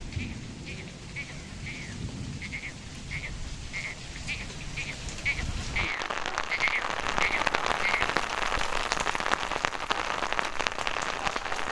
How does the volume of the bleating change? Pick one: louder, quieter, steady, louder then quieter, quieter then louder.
louder.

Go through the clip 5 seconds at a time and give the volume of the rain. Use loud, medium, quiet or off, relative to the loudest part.
medium, loud, loud.